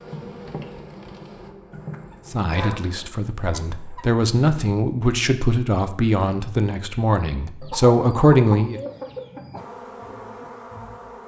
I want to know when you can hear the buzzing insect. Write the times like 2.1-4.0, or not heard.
0.0-3.1, 9.6-11.2.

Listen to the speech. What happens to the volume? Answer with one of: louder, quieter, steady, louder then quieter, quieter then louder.
louder.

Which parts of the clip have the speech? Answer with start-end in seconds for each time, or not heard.
2.2-8.8.